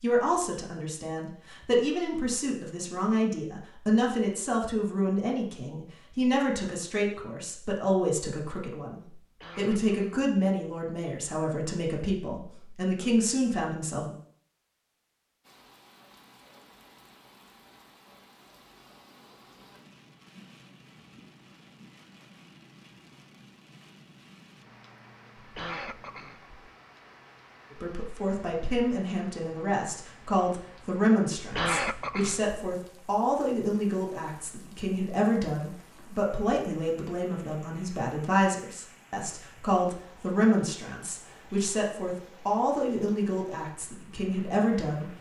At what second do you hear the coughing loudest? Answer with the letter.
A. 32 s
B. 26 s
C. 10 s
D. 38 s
A.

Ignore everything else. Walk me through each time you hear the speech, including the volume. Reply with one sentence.
You can hear the speech from 0.0 to 14.2 s, at a steady volume; and from 27.8 to 45.1 s, at a steady volume.